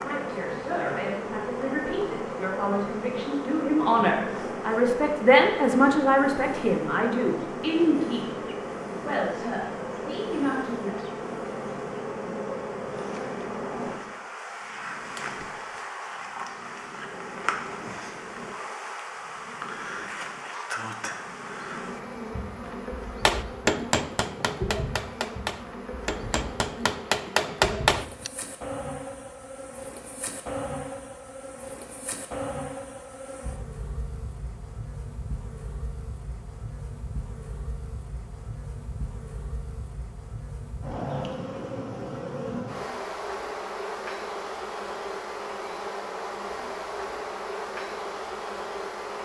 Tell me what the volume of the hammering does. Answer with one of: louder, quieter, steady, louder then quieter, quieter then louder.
quieter then louder.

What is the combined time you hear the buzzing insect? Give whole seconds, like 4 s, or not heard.
49 s.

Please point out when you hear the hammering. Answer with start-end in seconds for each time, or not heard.
23.2-28.3.